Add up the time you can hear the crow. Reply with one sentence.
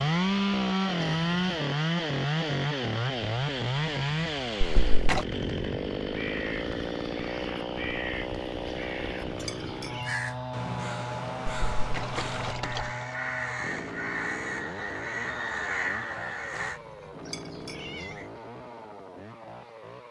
You can hear the crow for 11 seconds altogether.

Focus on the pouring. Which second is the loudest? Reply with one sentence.
The loudest moment of the pouring is at 5 seconds.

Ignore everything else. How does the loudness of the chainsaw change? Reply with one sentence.
The volume of the chainsaw goes down.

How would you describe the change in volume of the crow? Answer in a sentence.
The loudness of the crow goes up.